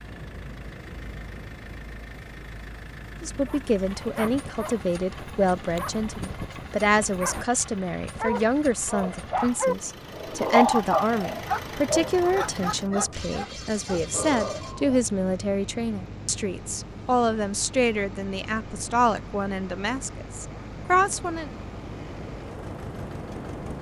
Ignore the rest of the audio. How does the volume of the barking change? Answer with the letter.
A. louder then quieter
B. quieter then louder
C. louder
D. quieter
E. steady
A.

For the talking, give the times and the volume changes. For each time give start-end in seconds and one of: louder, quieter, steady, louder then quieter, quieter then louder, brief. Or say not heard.
3.2-21.5 steady.